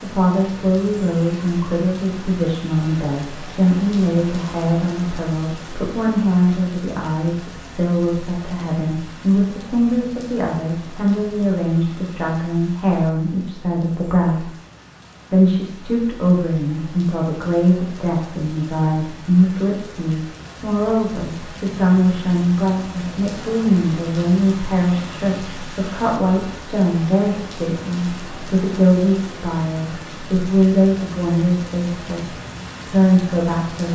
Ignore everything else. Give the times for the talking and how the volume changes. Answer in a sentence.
You can hear the talking from 0.0 to 14.5 s, at a steady volume; and from 15.3 to 33.8 s, at a steady volume.